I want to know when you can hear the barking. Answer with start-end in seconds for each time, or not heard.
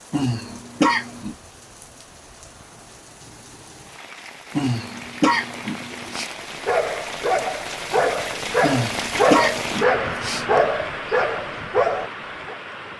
6.2-12.6.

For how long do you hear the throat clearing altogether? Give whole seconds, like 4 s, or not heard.
5 s.